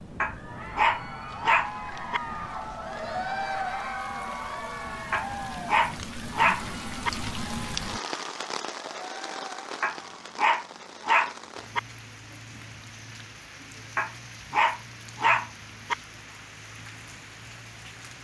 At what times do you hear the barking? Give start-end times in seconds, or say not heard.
0.2-2.2, 5.1-7.1, 9.8-11.8, 13.9-15.9.